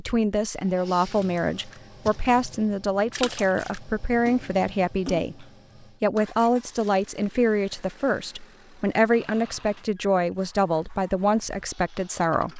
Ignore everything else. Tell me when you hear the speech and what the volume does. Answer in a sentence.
The speech can be heard from 0.0 to 12.5 s, at a steady volume.